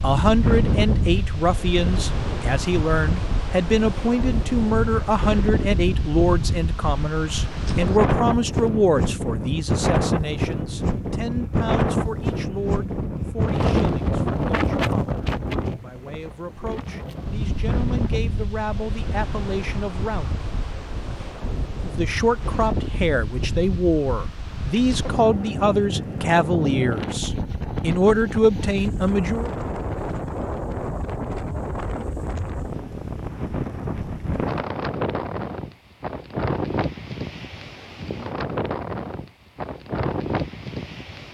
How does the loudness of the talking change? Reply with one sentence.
The volume of the talking goes down, then up.